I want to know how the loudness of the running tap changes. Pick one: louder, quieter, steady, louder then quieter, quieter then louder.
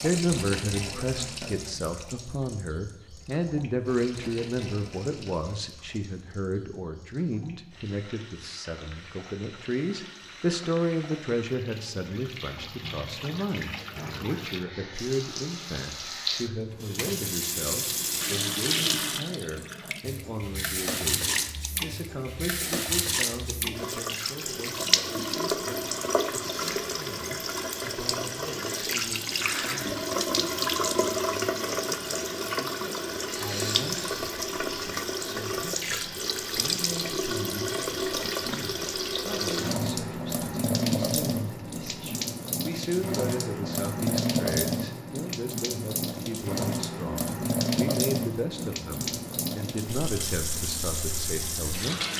louder.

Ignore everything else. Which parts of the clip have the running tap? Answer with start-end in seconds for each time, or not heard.
0.0-52.1.